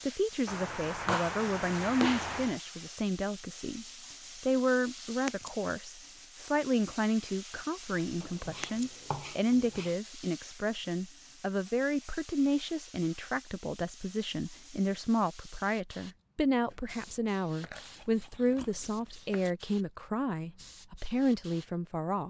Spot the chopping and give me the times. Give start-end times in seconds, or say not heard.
0.5-2.6, 8.2-9.9, 16.6-19.4.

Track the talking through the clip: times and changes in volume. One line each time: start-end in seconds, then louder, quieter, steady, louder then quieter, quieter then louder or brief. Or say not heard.
0.1-22.2 steady.